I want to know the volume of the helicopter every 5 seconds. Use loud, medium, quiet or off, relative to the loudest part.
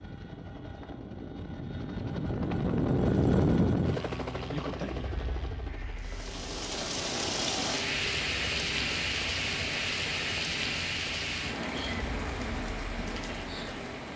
loud, quiet, quiet.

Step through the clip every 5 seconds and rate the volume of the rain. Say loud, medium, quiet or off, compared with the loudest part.
off, loud, loud.